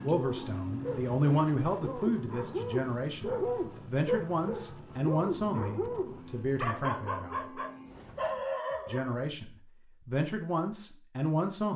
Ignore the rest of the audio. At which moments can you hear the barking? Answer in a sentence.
You can hear the barking from 0.1 to 9.3 s.